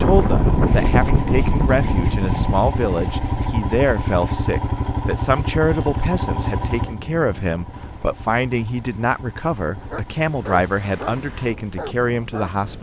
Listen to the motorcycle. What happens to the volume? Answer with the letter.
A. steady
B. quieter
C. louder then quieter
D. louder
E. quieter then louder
B.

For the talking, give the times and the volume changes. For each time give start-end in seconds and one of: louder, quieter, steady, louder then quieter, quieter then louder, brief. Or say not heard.
0.0-12.7 steady.